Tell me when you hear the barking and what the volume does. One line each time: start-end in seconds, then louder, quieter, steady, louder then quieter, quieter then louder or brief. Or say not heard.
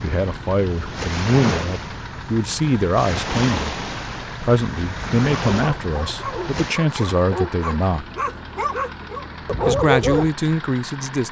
5.5-10.3 louder.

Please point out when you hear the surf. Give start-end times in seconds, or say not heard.
0.0-6.8.